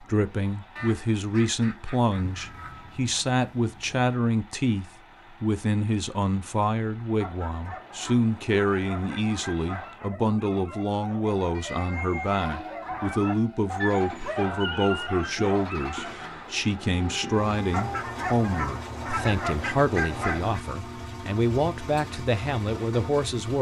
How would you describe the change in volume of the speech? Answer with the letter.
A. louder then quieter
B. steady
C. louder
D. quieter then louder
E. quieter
B.